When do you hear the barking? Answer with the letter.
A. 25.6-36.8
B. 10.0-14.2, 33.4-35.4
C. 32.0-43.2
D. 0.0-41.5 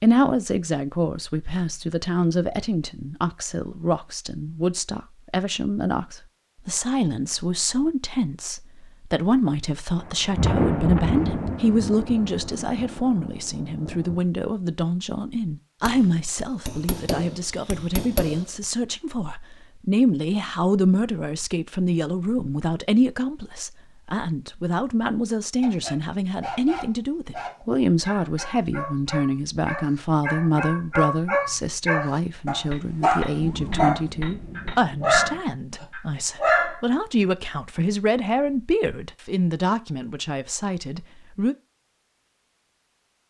A.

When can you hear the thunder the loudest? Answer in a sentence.
The loudest moment of the thunder is at 11 seconds.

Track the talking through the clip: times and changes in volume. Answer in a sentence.
The talking can be heard from 0.0 to 41.5 s, at a steady volume.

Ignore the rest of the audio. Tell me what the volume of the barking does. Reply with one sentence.
The volume of the barking goes up.